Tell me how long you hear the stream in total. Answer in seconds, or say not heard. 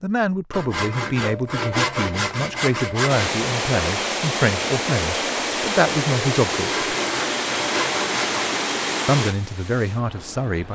8 s.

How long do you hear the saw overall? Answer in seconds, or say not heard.
5 s.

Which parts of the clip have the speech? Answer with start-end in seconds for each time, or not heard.
0.0-6.8, 9.1-10.7.